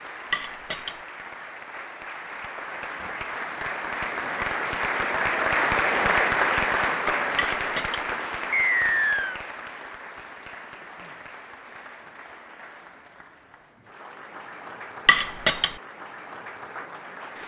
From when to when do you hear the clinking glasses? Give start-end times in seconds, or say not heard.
0.3-1.0, 7.3-8.1, 15.1-15.8.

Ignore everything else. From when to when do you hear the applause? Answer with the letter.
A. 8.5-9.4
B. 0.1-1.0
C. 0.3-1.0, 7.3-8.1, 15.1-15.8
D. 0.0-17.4
D.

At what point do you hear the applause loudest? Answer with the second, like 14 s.
6 s.